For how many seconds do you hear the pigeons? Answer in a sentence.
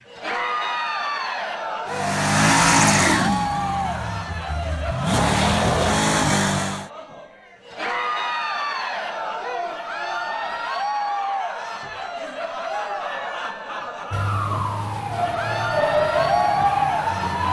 The pigeons can't be heard in this clip.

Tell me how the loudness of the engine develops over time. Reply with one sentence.
The loudness of the engine goes down, then up.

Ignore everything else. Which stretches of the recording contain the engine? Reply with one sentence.
You can hear the engine from 1.9 to 6.8 s.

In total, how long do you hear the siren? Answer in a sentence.
The siren can be heard for 3 seconds in total.